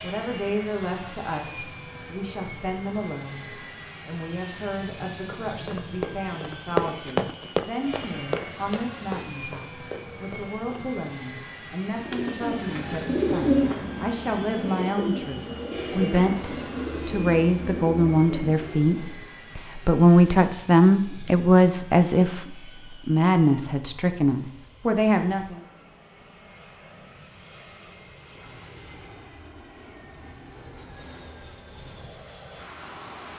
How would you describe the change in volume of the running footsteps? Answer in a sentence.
The volume of the running footsteps goes up, then down.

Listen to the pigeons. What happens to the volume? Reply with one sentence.
The volume of the pigeons goes down.